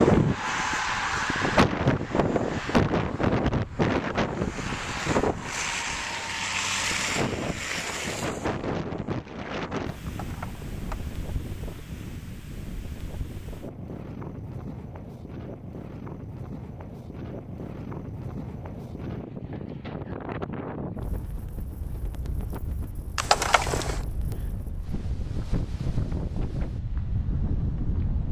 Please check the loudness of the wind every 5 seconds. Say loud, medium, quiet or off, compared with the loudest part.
loud, medium, quiet, quiet, quiet, medium.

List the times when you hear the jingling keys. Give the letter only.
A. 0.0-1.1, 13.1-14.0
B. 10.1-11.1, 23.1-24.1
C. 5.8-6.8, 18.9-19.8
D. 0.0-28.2
B.